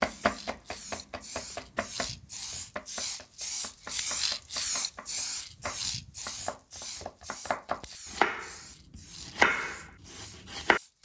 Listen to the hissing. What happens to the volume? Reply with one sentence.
The volume of the hissing goes up, then down.